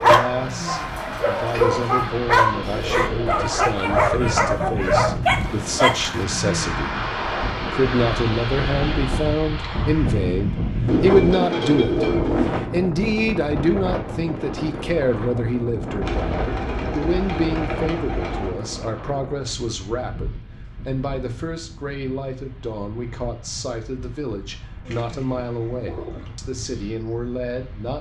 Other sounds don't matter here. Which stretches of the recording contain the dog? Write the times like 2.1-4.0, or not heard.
0.0-6.2.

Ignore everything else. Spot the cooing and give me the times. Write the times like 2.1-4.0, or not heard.
2.5-4.3, 10.8-12.5, 16.0-18.6, 24.9-26.4.